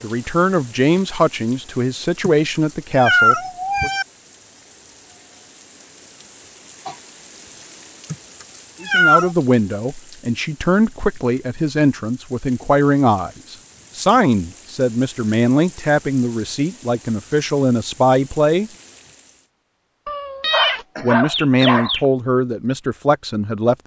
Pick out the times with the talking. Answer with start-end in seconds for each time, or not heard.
0.0-3.9, 8.8-18.7, 21.0-23.8.